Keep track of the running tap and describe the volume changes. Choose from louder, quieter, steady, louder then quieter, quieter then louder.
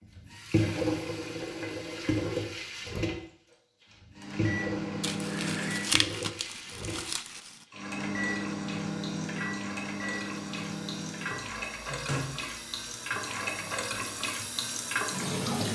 quieter then louder.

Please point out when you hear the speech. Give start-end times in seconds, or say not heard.
not heard.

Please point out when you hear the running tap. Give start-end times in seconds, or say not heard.
0.0-15.6.